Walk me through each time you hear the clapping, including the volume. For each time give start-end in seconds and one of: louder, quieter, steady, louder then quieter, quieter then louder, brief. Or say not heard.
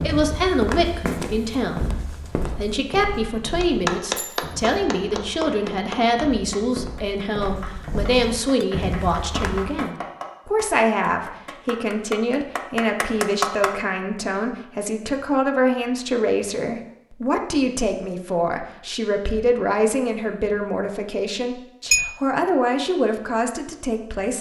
3.6-13.7 quieter then louder.